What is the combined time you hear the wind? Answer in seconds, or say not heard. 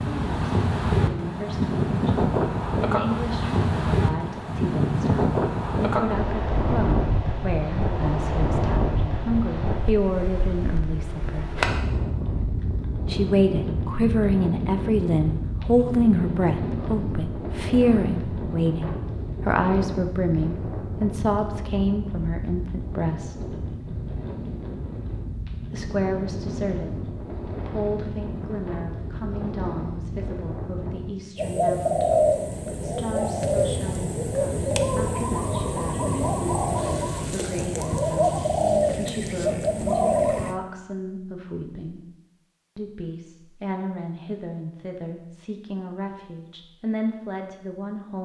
31 s.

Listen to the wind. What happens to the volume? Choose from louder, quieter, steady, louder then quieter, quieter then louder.
quieter.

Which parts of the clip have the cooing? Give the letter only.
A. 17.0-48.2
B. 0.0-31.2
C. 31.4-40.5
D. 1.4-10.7
C.